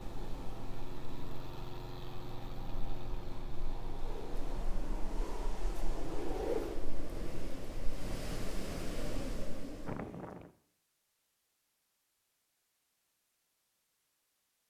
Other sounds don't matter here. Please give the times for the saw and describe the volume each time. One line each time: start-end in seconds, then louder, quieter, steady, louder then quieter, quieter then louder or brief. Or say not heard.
not heard.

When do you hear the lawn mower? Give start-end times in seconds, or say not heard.
0.0-4.7.